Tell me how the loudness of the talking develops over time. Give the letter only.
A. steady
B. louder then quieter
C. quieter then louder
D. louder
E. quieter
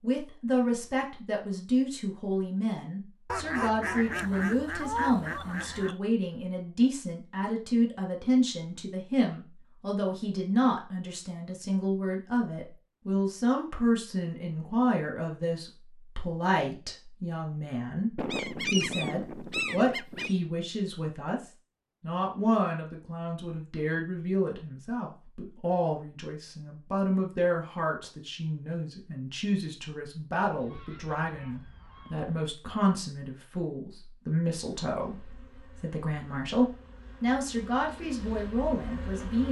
A.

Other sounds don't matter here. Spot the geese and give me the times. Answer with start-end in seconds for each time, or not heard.
3.2-6.0, 18.1-20.4, 30.4-32.4.